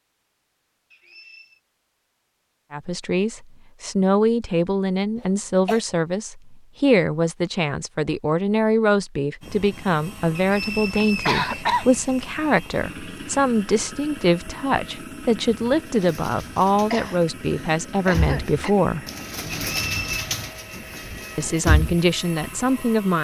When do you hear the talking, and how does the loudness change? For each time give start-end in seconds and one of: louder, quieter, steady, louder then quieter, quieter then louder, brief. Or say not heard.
2.7-19.1 steady
21.4-23.1 brief.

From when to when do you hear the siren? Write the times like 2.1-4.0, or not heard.
not heard.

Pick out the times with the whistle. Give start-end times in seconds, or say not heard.
0.9-1.6, 10.3-11.7, 19.7-20.2.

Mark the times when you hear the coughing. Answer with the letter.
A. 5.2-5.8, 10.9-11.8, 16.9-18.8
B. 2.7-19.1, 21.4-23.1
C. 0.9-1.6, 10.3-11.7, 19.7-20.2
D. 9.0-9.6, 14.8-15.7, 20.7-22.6
A.